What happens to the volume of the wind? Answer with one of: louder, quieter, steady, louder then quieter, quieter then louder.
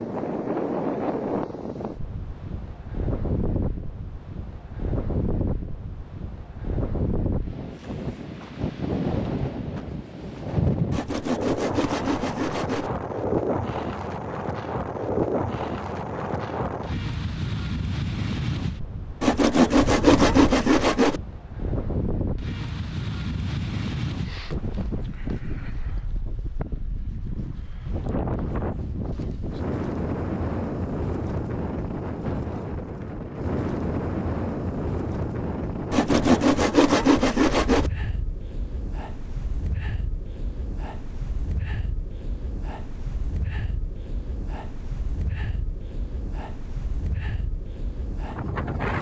quieter.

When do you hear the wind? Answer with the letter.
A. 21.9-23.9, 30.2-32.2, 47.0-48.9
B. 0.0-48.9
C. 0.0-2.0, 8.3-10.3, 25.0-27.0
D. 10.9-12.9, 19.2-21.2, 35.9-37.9
B.